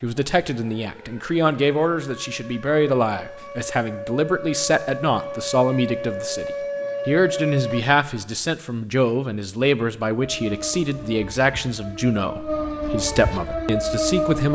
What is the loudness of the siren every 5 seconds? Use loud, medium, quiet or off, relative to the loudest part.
medium, loud, loud.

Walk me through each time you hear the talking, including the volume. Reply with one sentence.
The talking can be heard from 0.0 to 14.5 s, at a steady volume.